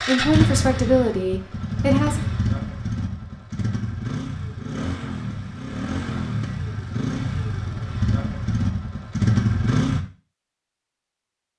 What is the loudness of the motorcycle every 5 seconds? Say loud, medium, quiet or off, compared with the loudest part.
loud, loud, off.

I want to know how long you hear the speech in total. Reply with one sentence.
You can hear the speech for 2 seconds altogether.